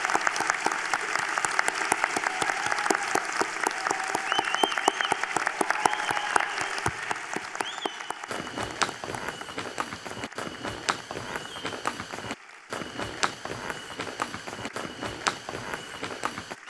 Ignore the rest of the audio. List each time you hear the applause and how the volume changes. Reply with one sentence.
You can hear the applause from 0.0 to 16.6 s, getting quieter.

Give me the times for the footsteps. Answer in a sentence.
The footsteps can be heard from 8.2 to 16.6 s.